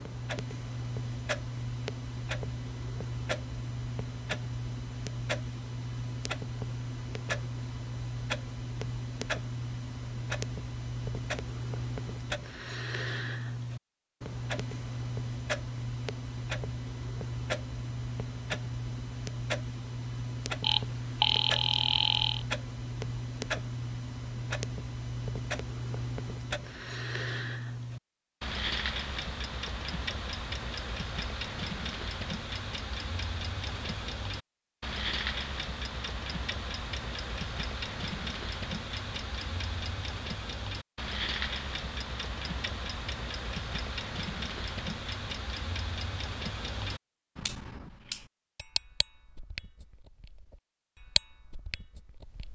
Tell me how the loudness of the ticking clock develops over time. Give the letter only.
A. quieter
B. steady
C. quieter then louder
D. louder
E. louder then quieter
B.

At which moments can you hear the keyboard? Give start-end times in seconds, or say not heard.
not heard.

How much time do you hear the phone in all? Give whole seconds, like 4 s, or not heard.
2 s.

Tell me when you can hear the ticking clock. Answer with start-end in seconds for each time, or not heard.
0.0-52.5.